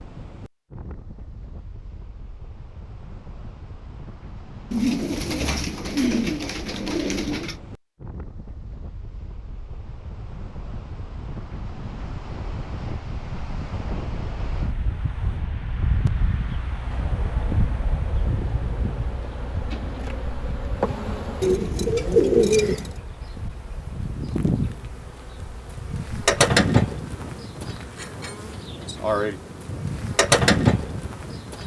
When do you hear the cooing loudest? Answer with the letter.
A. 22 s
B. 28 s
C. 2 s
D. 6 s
A.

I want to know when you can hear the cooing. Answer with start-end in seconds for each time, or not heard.
4.7-7.5, 21.4-22.9.